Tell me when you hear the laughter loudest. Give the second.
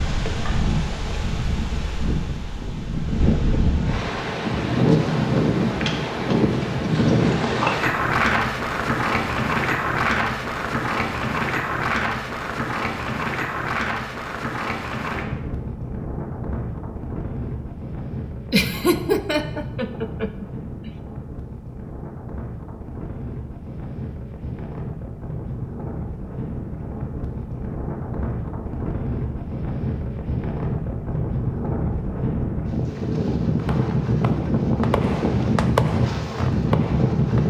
19 s.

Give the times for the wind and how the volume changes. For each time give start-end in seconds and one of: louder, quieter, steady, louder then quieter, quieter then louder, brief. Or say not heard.
0.0-37.4 quieter then louder.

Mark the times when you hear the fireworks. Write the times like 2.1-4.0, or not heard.
33.5-37.4.